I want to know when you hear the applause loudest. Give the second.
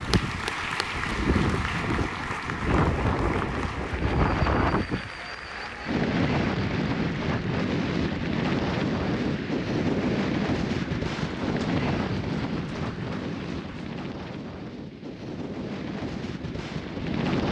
1 s.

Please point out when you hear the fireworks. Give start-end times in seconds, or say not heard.
not heard.